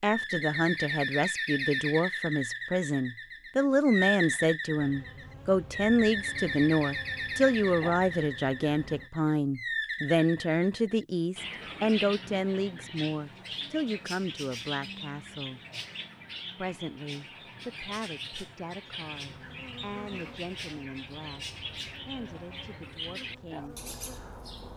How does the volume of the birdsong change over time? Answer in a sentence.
The volume of the birdsong goes down.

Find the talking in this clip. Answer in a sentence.
You can hear the talking from 0.0 to 15.6 s, from 16.6 to 21.4 s and from 22.1 to 23.8 s.